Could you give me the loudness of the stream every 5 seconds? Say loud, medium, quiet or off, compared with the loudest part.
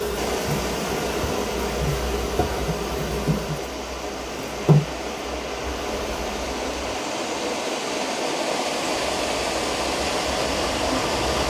medium, loud, loud.